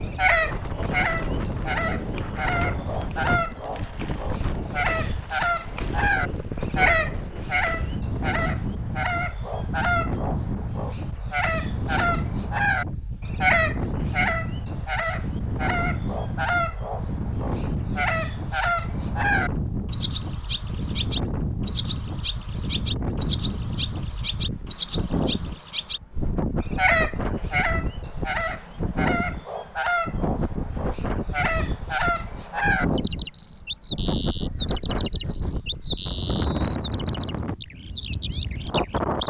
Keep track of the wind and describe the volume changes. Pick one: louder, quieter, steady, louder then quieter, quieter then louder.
steady.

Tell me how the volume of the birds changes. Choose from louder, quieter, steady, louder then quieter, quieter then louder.
steady.